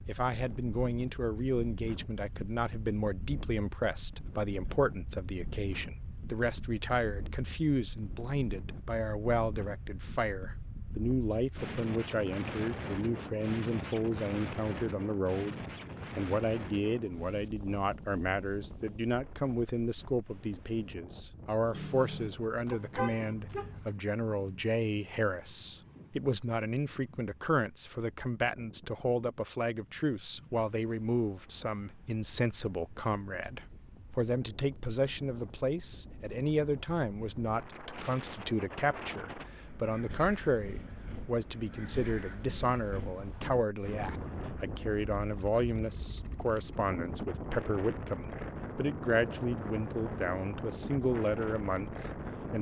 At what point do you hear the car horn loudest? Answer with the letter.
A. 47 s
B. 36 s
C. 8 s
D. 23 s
D.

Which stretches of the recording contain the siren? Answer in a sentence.
You can't hear the siren here.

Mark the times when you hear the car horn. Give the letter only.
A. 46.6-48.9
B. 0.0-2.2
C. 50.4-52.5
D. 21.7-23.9
D.